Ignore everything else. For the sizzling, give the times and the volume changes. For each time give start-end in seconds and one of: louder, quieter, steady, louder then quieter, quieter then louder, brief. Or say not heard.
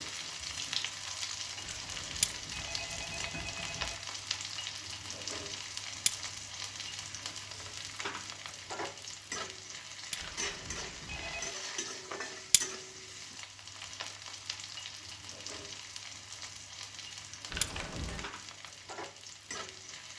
0.0-20.1 quieter.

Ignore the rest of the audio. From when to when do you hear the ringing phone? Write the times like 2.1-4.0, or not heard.
1.6-4.0, 10.2-11.5, 17.5-18.2.